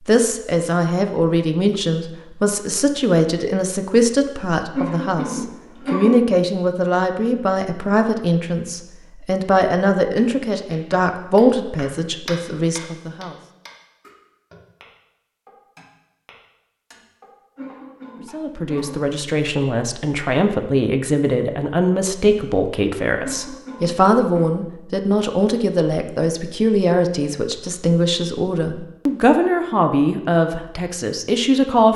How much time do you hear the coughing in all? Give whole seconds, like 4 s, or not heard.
4 s.